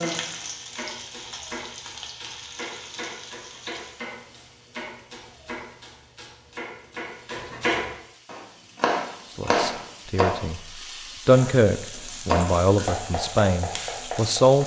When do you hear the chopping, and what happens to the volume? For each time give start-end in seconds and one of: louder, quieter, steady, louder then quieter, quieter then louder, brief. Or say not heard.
0.0-10.3 louder
12.2-14.6 brief.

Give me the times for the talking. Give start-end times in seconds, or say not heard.
9.3-14.6.